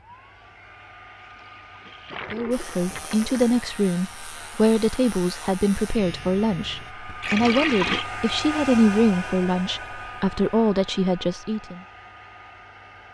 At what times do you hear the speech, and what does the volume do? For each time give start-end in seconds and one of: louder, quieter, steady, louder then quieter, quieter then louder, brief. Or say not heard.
2.3-11.8 steady.